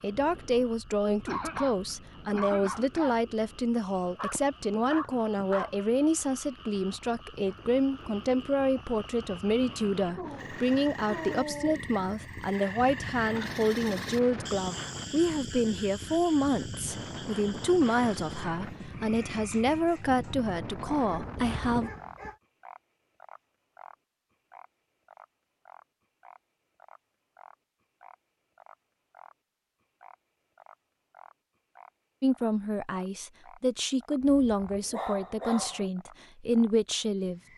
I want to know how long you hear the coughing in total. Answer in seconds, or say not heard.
2 s.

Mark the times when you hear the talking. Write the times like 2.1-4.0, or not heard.
0.0-21.9, 32.2-37.4.